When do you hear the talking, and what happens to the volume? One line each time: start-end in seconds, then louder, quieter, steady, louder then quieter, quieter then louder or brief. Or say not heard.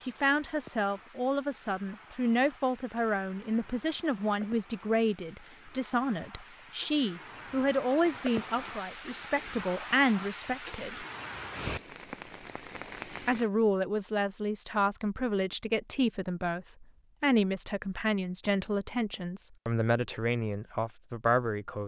0.0-11.1 steady
13.2-21.8 steady.